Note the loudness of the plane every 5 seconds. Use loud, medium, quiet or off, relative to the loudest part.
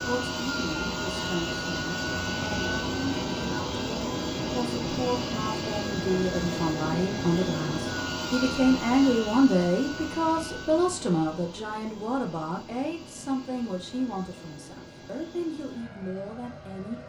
loud, loud, quiet, quiet.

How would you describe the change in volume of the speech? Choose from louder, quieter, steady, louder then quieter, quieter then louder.
louder then quieter.